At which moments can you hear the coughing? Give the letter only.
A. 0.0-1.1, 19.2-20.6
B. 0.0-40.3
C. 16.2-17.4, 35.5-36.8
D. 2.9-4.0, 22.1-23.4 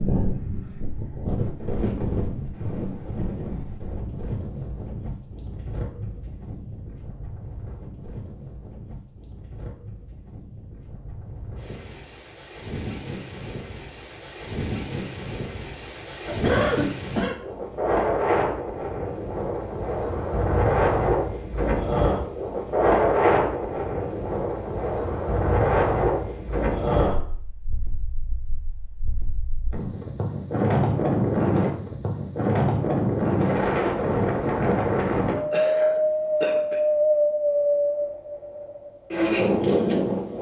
C.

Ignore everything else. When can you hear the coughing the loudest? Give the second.
17 s.